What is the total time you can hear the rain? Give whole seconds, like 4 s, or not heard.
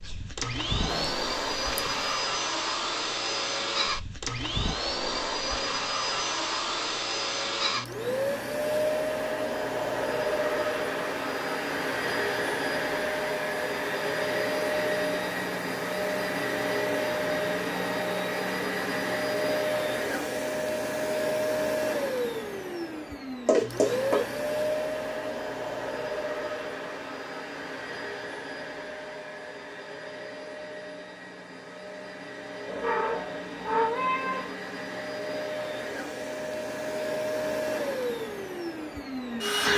not heard.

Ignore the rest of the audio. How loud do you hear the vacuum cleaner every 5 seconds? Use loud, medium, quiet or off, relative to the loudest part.
loud, loud, loud, loud, loud, medium, medium, loud.